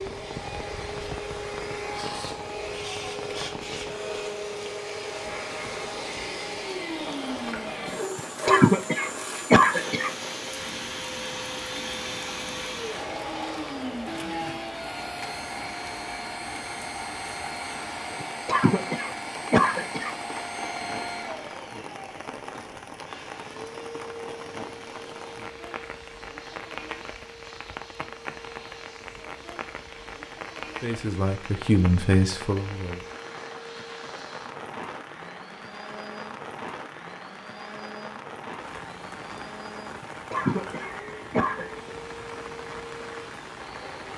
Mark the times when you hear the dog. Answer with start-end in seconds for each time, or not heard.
8.0-8.7.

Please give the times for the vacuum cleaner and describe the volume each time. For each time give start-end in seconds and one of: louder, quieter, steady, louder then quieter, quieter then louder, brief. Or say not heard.
0.0-44.1 quieter.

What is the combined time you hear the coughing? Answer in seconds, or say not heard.
6 s.